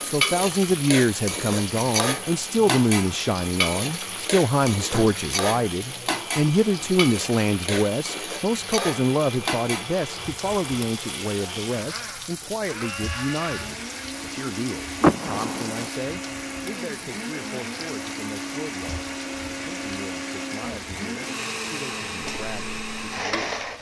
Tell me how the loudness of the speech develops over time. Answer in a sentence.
The volume of the speech goes down.